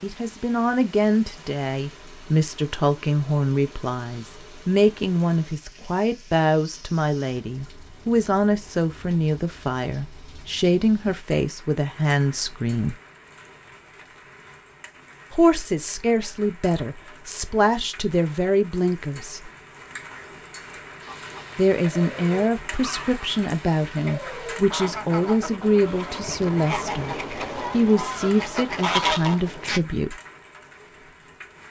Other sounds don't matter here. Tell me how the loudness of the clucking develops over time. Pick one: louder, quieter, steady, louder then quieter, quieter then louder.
louder.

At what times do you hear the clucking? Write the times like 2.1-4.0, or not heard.
21.0-29.8.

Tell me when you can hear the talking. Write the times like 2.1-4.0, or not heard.
0.0-12.9, 15.3-19.5, 21.6-30.1.